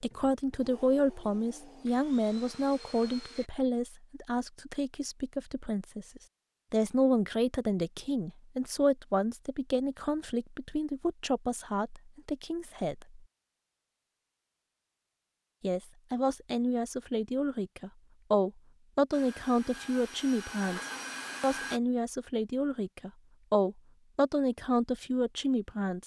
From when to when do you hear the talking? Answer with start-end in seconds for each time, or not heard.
0.0-13.2, 15.6-26.0.